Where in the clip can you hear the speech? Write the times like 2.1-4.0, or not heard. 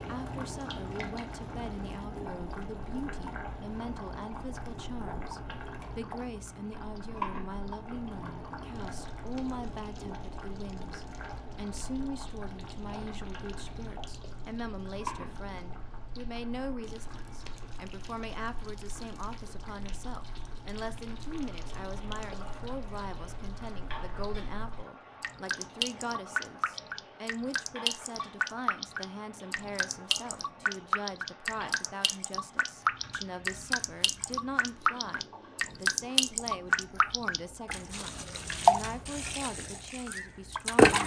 0.1-41.0.